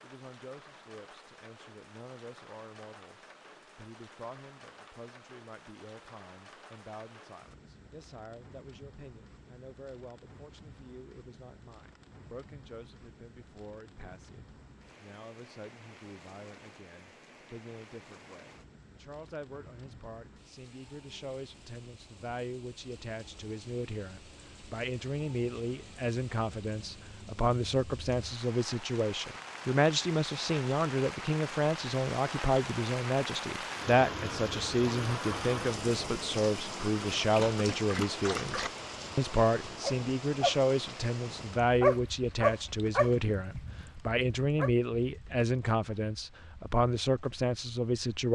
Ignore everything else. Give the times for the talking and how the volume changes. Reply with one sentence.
The talking can be heard from 0.0 to 48.2 s, getting louder.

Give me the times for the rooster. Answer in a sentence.
You can't hear the rooster here.